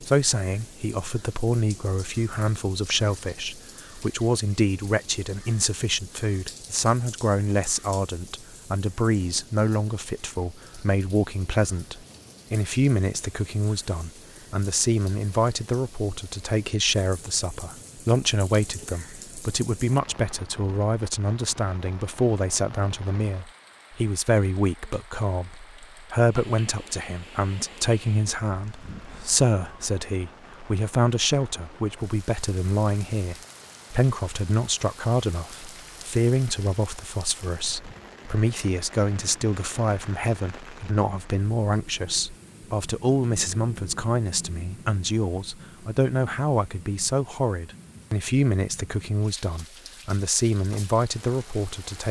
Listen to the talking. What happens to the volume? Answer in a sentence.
The volume of the talking stays about the same.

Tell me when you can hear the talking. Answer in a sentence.
You can hear the talking from 0.0 to 52.0 s.